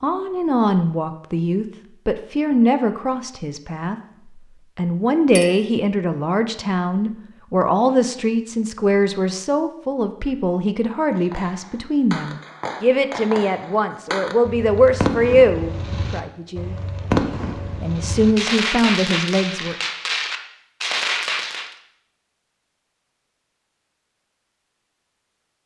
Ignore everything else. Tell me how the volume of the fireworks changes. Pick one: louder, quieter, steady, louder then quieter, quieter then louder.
louder.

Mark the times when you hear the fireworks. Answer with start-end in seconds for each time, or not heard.
11.1-21.7.